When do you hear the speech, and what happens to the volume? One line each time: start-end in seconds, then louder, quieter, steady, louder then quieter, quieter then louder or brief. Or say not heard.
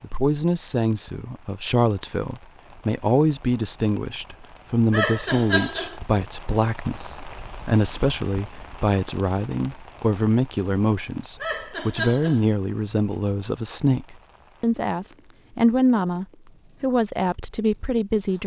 0.0-18.4 steady.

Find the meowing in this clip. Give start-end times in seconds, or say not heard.
4.9-6.0, 11.4-12.4.